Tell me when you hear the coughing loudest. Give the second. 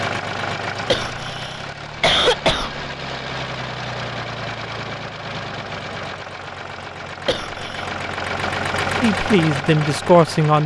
2 s.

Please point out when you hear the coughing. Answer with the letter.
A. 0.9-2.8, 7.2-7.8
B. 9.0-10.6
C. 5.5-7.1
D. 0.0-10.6
A.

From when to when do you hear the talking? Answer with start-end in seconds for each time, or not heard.
9.0-10.6.